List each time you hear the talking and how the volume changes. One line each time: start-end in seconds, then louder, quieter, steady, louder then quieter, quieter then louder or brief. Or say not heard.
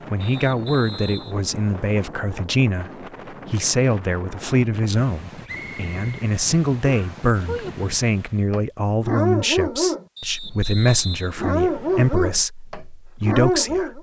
0.1-13.9 steady.